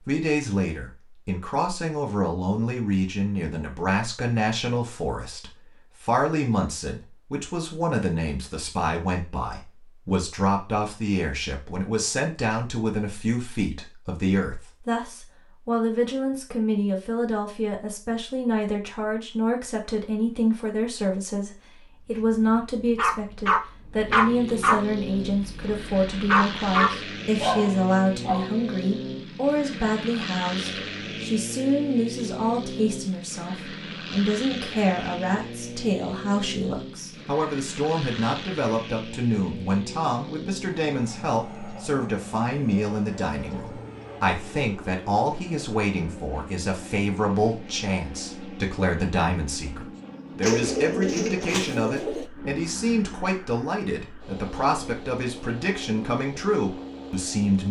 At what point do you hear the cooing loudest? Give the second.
51 s.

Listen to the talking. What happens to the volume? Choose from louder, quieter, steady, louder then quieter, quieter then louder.
steady.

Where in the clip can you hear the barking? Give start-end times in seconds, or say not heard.
22.1-28.4.